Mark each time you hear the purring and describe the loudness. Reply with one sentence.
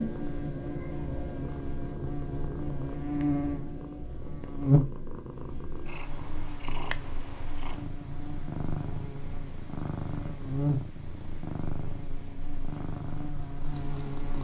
You can hear the purring from 0.0 to 14.4 s, at a steady volume.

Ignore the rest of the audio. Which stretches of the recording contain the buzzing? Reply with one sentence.
The buzzing can be heard from 0.0 to 14.4 s.